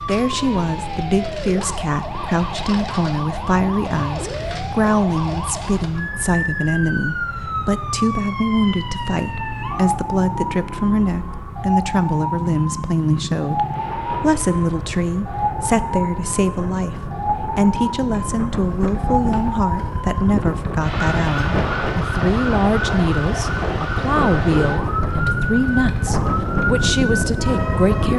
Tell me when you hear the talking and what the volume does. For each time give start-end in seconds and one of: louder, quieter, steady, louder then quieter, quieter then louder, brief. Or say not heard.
0.0-28.1 steady.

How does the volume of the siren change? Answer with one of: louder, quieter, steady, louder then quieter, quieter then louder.
steady.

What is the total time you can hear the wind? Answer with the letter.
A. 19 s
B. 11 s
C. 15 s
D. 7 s
C.